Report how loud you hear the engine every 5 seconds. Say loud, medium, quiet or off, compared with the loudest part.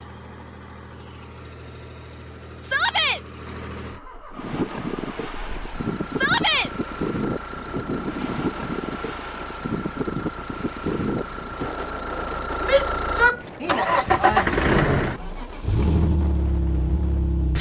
quiet, quiet, loud, loud.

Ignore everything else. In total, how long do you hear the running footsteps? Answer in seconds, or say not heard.
not heard.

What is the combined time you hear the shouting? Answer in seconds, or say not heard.
3 s.